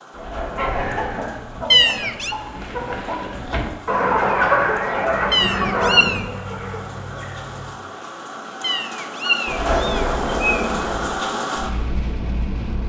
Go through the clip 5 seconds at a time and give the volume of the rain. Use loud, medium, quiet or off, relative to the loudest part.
quiet, medium, loud.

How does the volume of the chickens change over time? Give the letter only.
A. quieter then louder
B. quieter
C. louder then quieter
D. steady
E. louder
C.